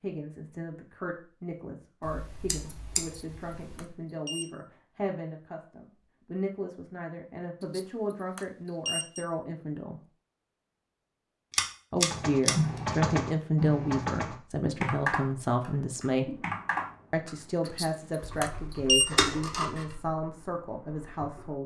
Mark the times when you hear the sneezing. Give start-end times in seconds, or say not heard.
not heard.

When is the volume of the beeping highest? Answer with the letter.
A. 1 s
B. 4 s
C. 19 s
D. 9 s
C.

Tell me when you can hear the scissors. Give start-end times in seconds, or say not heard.
2.0-3.9, 11.5-12.6, 19.1-19.9.